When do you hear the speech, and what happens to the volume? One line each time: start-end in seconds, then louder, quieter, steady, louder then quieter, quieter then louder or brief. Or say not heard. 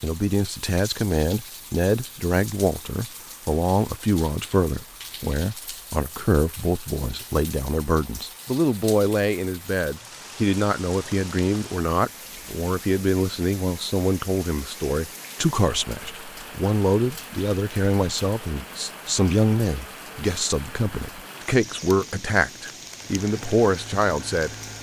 0.0-24.6 steady.